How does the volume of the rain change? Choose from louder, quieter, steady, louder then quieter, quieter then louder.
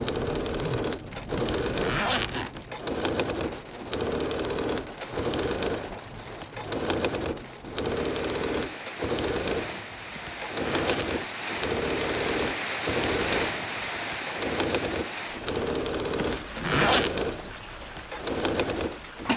louder then quieter.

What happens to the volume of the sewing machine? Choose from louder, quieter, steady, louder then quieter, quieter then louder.
steady.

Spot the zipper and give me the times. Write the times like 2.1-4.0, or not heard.
1.4-2.5, 10.2-11.2, 16.1-17.1.